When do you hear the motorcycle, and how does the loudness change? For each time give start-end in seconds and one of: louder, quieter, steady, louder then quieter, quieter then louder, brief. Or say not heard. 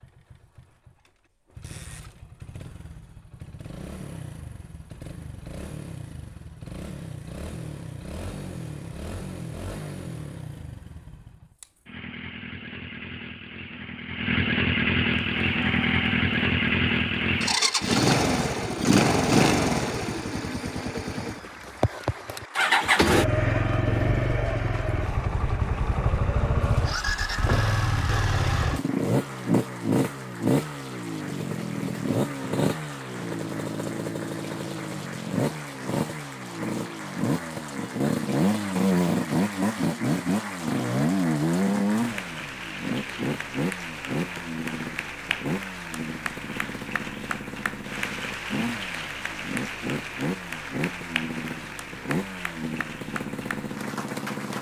0.0-54.5 louder then quieter.